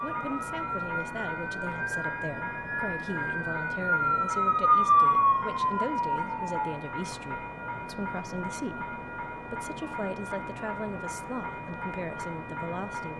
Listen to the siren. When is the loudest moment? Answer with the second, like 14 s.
5 s.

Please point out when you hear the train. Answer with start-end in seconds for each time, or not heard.
0.0-13.1.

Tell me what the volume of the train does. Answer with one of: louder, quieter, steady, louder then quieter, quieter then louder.
steady.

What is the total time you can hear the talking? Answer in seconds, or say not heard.
13 s.